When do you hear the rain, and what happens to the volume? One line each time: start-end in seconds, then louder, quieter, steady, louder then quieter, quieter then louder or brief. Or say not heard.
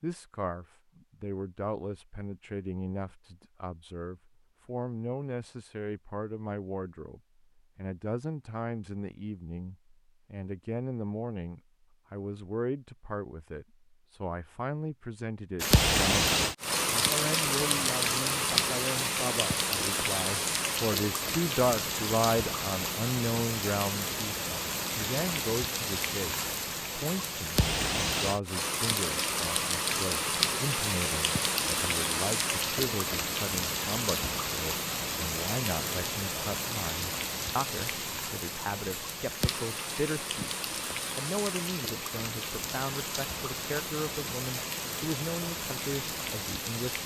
15.6-47.0 quieter.